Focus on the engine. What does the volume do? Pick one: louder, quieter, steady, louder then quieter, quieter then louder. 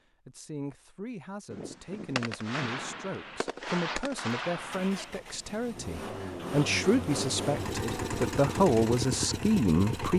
louder.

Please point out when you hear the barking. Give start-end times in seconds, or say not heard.
not heard.